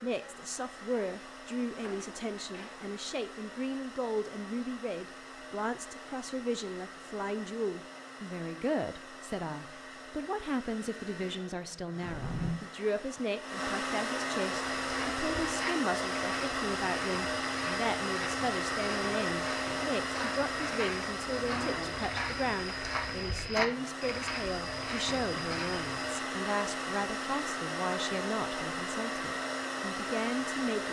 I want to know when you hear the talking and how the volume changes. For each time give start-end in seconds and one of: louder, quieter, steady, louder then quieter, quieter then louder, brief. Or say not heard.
0.0-30.8 steady.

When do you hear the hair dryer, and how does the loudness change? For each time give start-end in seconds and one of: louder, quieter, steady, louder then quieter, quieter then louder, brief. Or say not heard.
0.0-30.8 louder.